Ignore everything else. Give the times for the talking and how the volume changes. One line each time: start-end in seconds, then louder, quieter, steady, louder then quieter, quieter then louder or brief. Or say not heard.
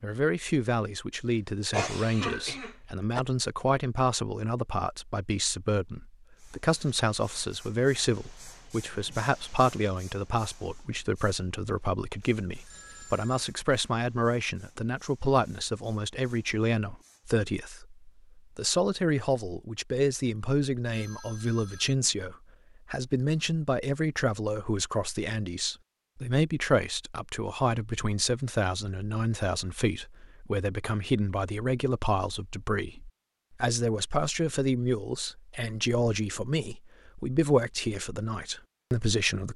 0.0-39.5 steady.